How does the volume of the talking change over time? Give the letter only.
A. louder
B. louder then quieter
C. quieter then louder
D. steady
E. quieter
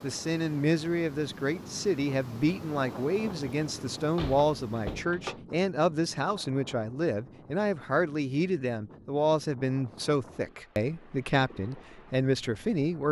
D.